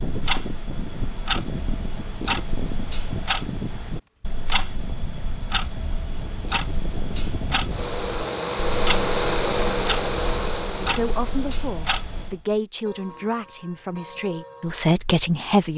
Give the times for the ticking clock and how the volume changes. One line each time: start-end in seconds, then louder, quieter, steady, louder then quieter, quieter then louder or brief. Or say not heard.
0.0-15.7 quieter.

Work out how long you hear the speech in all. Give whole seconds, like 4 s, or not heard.
5 s.